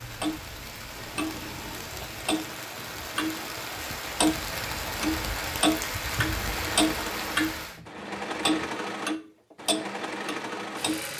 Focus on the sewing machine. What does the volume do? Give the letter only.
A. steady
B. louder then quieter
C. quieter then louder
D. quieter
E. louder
E.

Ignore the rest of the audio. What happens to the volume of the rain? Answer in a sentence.
The volume of the rain goes up.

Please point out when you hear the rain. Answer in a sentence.
You can hear the rain from 0.0 to 7.8 s.